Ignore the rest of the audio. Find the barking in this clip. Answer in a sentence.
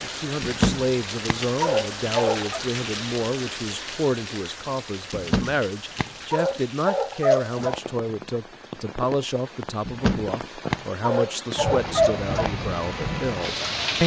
You can hear the barking from 0.4 to 2.6 s, from 5.1 to 7.8 s and from 9.8 to 12.5 s.